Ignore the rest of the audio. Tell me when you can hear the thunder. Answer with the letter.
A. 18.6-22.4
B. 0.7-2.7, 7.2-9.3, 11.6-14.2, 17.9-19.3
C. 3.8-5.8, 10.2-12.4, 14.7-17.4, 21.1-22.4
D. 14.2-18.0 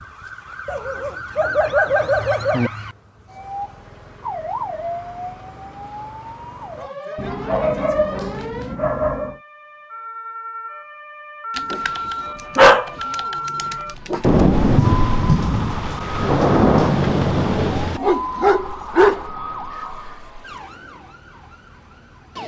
D.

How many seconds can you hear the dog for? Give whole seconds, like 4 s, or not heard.
8 s.